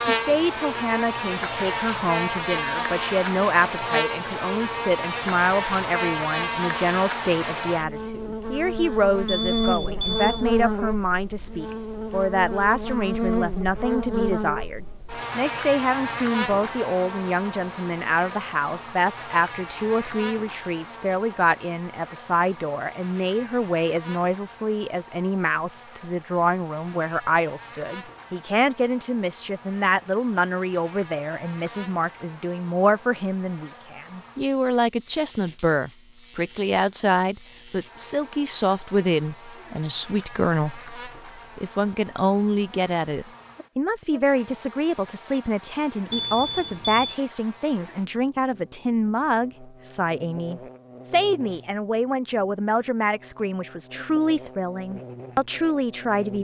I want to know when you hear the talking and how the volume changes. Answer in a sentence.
You can hear the talking from 0.0 to 56.3 s, at a steady volume.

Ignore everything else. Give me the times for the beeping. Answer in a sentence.
You can hear the beeping from 9.2 to 10.4 s and from 46.1 to 47.1 s.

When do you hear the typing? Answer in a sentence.
You can't hear the typing here.